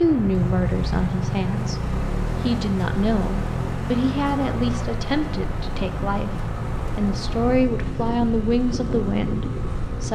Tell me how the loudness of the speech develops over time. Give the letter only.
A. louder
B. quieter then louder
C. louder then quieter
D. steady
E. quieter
D.